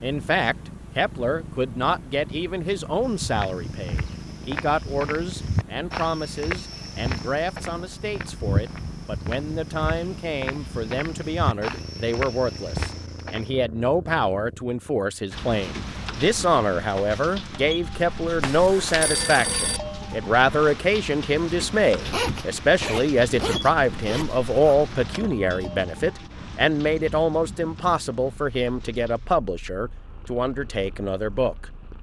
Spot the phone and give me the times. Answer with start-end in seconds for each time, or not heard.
18.4-19.8.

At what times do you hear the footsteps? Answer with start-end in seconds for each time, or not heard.
3.0-13.5.